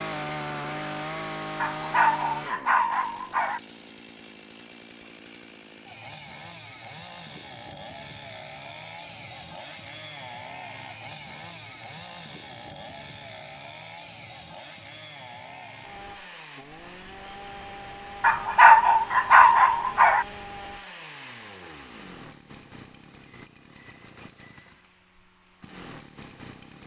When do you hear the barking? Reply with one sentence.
The barking can be heard from 1.6 to 3.6 s and from 18.2 to 20.2 s.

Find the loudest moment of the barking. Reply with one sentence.
The volume of the barking peaks at 19 seconds.